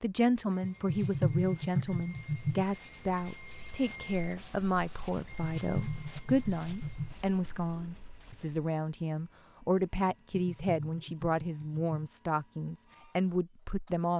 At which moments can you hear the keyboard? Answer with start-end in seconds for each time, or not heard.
0.6-2.6, 5.4-7.2, 10.3-12.0.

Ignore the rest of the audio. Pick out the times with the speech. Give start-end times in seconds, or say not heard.
0.0-14.1.